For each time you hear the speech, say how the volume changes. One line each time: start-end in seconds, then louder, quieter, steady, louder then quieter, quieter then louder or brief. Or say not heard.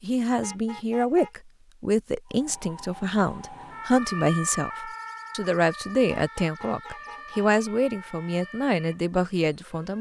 0.0-9.9 steady.